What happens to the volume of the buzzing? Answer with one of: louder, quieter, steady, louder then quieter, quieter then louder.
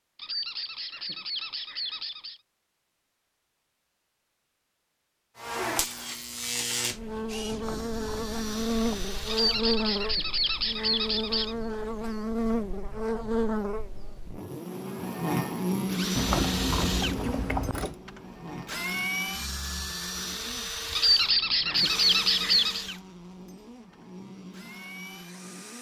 quieter.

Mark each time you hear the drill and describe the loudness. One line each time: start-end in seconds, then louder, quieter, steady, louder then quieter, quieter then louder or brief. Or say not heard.
7.2-9.7 brief
15.8-25.7 quieter.